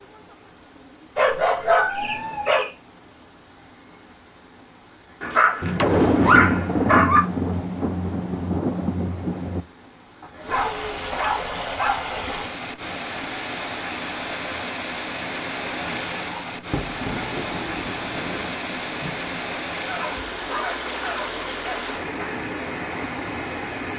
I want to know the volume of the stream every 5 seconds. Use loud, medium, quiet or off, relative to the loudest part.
quiet, quiet, loud, loud, loud.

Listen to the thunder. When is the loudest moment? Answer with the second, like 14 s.
6 s.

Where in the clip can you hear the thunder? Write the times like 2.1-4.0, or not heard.
5.6-9.6, 16.7-19.4.